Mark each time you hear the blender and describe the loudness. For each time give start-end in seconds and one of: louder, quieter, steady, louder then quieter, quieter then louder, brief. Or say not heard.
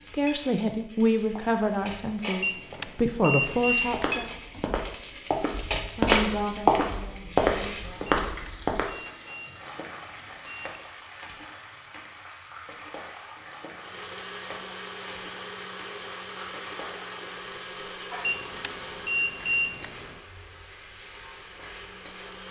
13.8-22.4 quieter.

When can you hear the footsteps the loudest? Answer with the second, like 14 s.
7 s.